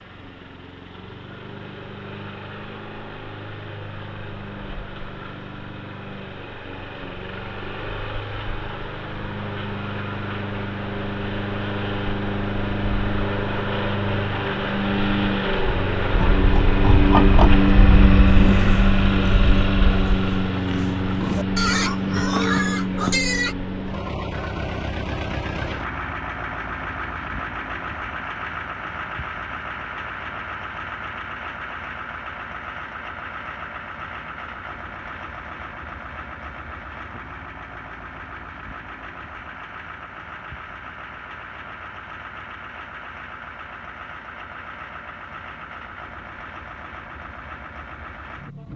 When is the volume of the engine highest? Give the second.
18 s.